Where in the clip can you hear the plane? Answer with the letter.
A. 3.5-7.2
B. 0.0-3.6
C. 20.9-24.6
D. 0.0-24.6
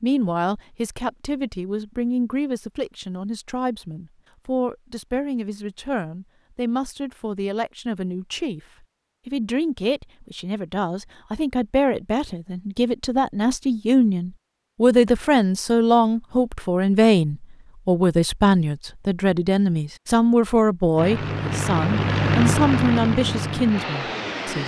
C.